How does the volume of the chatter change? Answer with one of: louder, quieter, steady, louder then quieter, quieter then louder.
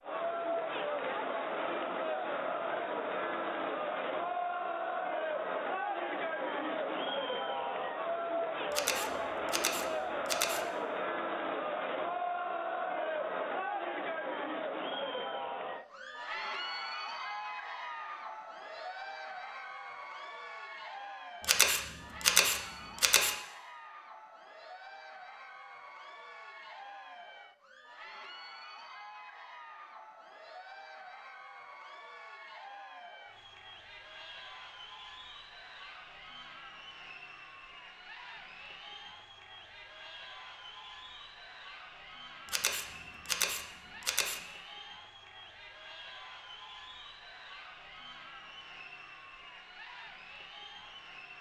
quieter.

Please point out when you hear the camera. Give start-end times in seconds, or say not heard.
8.7-10.7, 21.4-23.4, 42.5-44.4.